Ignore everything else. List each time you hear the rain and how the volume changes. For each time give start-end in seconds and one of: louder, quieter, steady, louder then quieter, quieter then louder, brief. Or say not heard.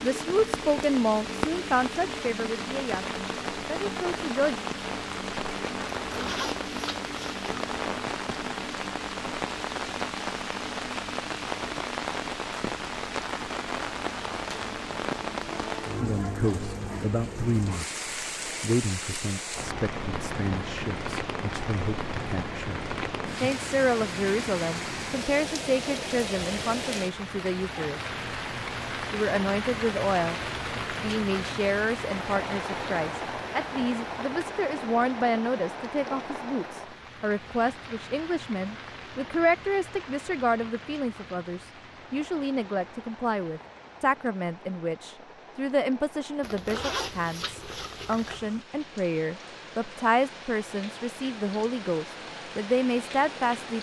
0.0-53.7 quieter.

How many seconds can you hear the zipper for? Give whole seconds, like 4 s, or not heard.
4 s.